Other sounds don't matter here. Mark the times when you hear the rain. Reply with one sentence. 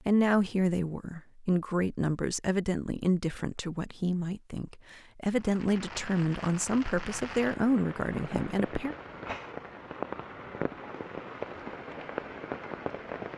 The rain can be heard from 5.3 to 13.3 s.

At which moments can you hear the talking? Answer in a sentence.
You can hear the talking from 0.1 to 8.9 s.